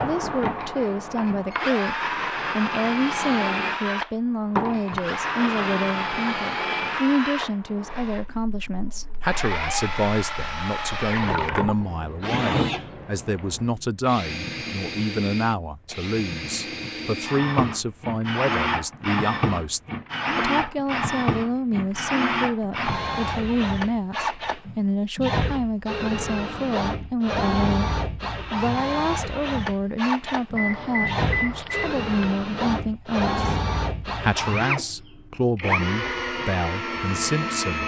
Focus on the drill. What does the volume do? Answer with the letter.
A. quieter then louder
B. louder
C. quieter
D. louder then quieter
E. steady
E.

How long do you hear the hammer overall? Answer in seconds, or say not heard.
not heard.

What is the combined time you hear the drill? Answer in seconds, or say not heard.
38 s.